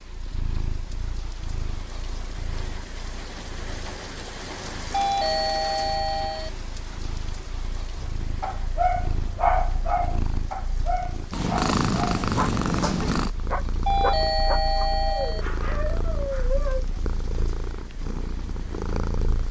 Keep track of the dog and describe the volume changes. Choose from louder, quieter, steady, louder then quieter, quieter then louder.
quieter.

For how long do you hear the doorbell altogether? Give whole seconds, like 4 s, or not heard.
3 s.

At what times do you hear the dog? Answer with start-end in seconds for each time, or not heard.
7.9-16.9.